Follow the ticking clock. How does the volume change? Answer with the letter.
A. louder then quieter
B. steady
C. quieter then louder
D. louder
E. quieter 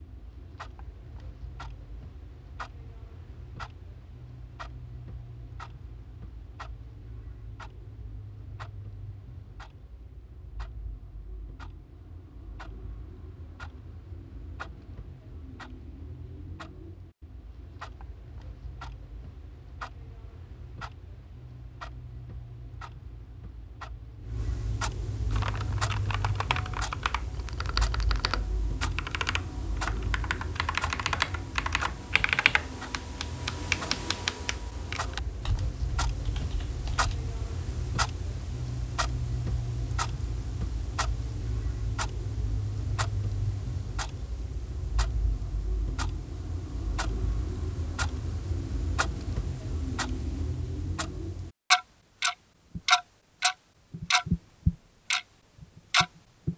D.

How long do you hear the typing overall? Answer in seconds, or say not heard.
12 s.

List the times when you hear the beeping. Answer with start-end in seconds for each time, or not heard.
not heard.